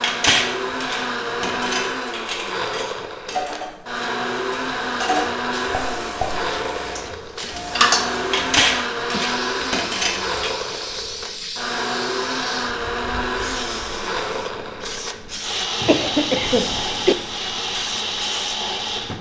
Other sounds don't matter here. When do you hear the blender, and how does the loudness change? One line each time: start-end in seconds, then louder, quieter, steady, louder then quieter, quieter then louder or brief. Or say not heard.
0.0-19.1 steady.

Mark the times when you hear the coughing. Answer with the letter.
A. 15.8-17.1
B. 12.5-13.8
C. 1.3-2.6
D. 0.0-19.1
A.